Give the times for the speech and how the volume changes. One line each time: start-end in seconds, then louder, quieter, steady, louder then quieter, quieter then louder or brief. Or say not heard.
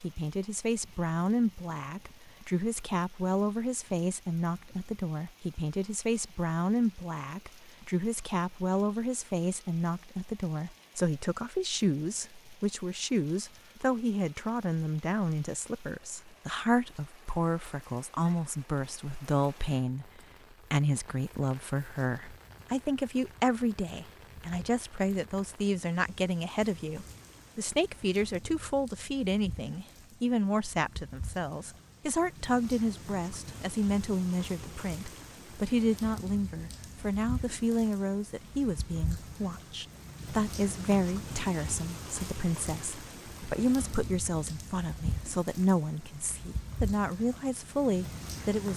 0.0-48.7 steady.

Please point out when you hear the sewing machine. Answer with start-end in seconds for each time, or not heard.
not heard.